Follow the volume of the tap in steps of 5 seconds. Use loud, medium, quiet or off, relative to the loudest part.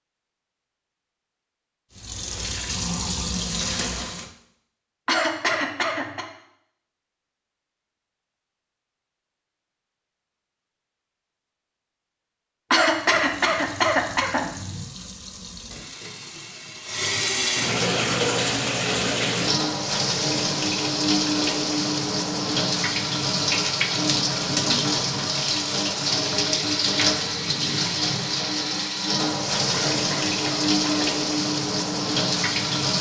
medium, off, quiet, loud, loud, loud, loud.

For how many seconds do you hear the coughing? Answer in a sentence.
The coughing can be heard for 5 seconds in total.